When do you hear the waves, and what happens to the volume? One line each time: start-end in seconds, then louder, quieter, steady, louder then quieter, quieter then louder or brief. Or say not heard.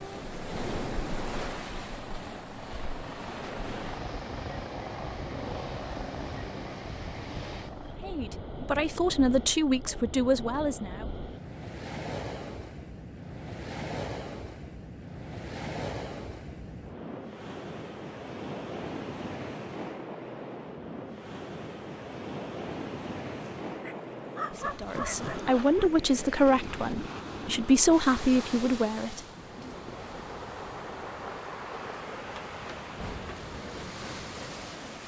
0.0-35.0 steady.